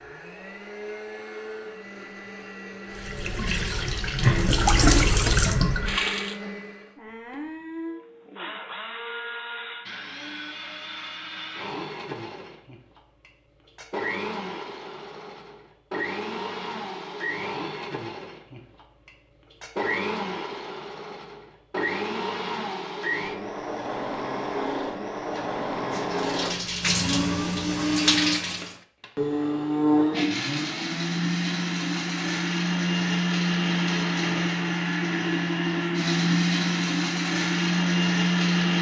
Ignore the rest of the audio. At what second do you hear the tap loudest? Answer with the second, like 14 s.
5 s.